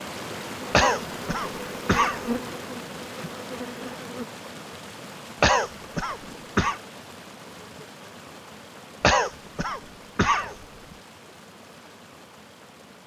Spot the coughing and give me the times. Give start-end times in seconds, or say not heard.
0.7-2.2, 5.4-6.8, 9.0-10.9.